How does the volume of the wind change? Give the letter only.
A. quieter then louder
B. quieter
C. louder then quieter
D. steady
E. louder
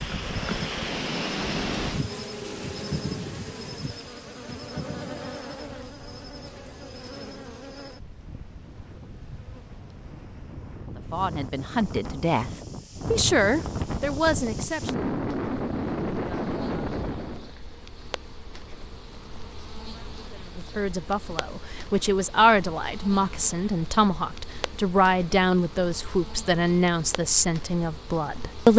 A.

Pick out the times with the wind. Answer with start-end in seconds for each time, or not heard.
0.0-17.5.